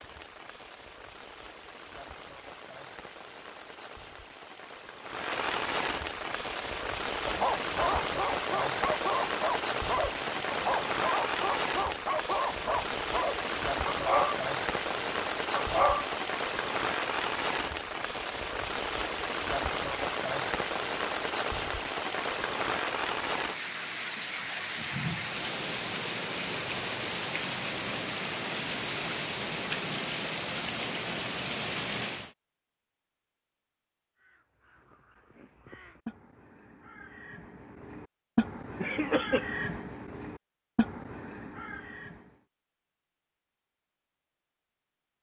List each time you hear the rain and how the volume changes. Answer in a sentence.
You can hear the rain from 0.0 to 32.4 s, getting louder.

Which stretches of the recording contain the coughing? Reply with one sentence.
You can hear the coughing from 38.8 to 39.5 s.